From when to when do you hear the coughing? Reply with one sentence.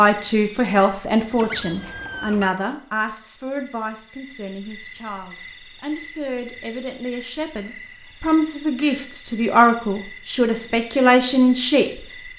You can't hear the coughing here.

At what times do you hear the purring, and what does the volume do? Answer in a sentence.
You can't hear the purring here.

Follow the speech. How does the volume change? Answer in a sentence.
The loudness of the speech goes down, then up.